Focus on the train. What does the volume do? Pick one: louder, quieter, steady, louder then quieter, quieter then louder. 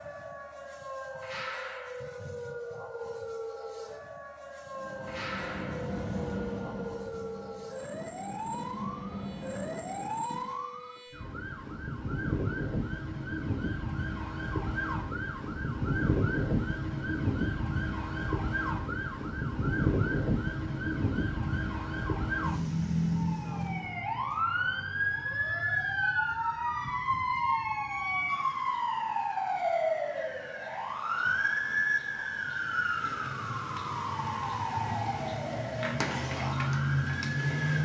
quieter then louder.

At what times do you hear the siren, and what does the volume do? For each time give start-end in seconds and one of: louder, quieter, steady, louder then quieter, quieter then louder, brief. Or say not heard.
0.0-37.7 louder.